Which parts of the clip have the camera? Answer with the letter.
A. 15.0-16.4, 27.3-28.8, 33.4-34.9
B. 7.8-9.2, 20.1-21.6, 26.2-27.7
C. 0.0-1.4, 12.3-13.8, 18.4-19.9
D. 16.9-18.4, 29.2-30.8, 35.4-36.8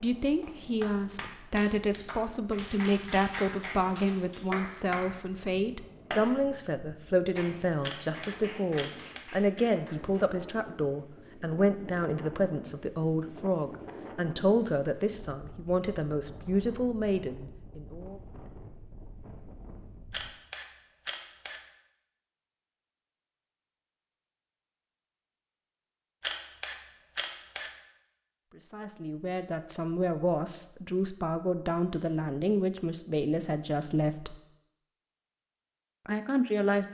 B.